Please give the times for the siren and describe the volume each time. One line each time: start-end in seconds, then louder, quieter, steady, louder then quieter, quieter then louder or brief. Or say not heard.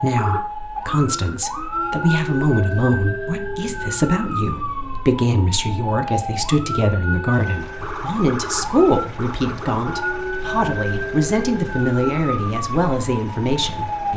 0.0-14.1 steady.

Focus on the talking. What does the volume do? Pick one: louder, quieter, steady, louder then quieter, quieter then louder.
steady.